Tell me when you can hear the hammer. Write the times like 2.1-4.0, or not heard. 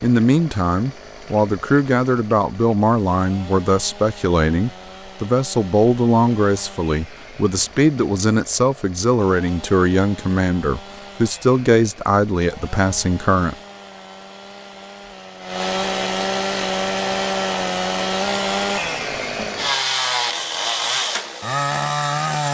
not heard.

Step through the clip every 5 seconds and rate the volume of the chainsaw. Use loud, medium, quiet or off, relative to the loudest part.
quiet, quiet, quiet, loud, loud.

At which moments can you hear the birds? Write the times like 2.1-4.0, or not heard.
not heard.